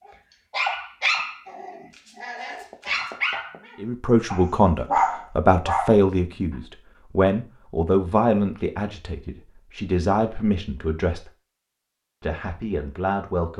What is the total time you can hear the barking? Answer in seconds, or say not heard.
6 s.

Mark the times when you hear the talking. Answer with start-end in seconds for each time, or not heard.
3.8-11.3, 12.2-13.5.